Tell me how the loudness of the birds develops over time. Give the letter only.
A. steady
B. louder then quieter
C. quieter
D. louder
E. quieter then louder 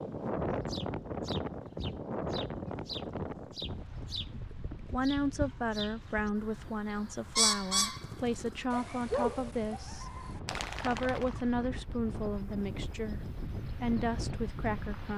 B.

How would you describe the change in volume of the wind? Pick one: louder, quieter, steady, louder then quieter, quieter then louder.
quieter then louder.